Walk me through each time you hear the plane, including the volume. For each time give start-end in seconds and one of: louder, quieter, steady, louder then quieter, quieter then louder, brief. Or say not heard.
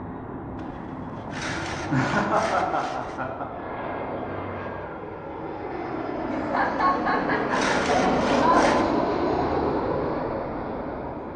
0.0-11.3 louder.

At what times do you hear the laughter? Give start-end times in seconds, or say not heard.
1.3-3.5, 6.2-8.7.